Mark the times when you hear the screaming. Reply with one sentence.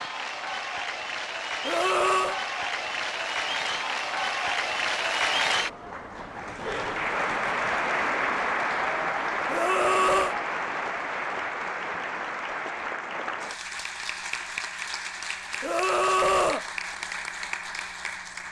You can hear the screaming from 1.6 to 2.4 s, from 9.4 to 10.3 s and from 15.6 to 16.6 s.